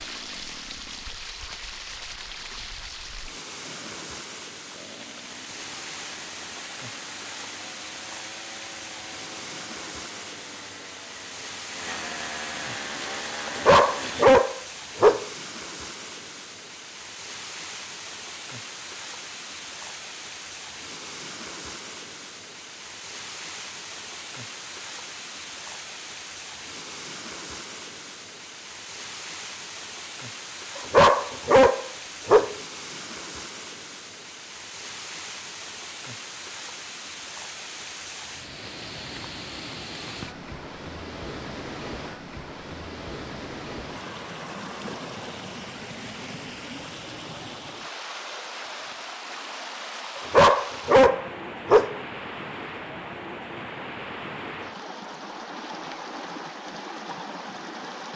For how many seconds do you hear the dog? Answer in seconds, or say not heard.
5 s.